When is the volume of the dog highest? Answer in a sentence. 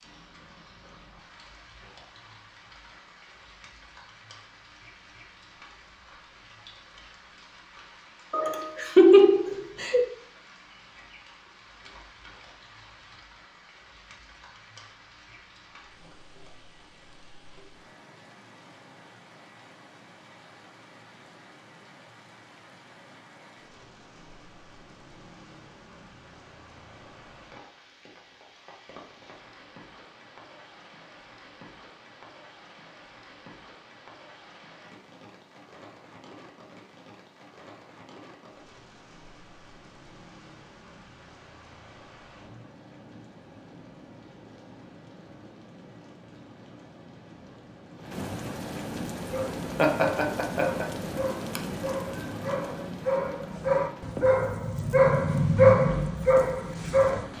The loudest moment of the dog is at 56 seconds.